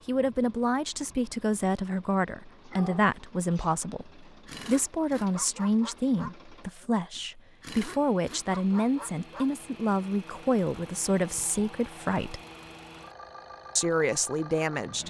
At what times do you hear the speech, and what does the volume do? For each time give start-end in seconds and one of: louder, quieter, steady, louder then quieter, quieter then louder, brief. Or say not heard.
0.1-12.4 steady
13.8-15.0 brief.